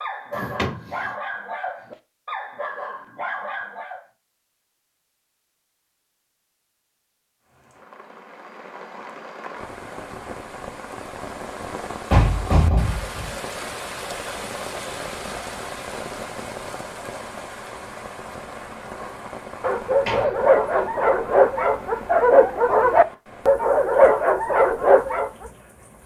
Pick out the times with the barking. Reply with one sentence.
The barking can be heard from 0.0 to 4.0 s and from 18.9 to 25.5 s.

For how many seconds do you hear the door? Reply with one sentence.
The door can be heard for 3 seconds in total.